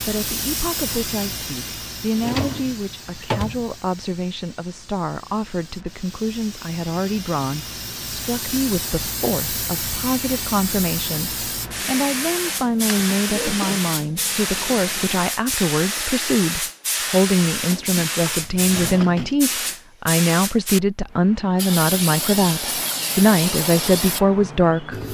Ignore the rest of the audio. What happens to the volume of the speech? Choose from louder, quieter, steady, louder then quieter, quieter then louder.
louder.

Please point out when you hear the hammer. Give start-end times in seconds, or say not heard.
not heard.